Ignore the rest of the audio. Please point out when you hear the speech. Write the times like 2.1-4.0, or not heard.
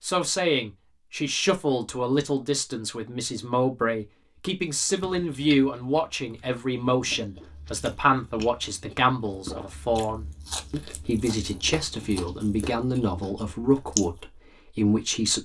0.0-15.4.